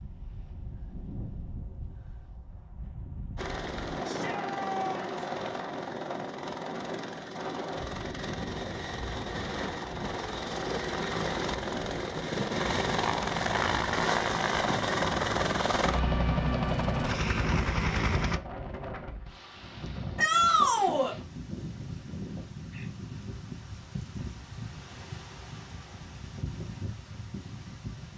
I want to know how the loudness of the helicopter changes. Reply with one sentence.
The volume of the helicopter goes up.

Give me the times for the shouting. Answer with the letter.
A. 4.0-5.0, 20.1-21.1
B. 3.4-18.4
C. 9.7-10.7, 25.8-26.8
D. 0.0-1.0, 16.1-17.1
A.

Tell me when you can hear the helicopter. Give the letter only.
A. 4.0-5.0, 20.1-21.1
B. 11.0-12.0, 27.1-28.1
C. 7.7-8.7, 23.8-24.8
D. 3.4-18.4
D.